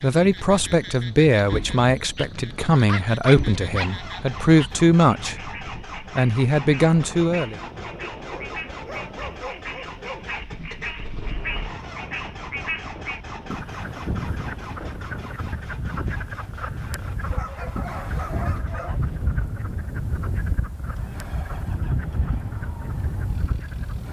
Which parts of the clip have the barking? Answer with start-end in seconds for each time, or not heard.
2.2-4.0, 8.2-10.4, 17.3-19.0.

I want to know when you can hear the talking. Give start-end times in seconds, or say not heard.
0.0-7.6.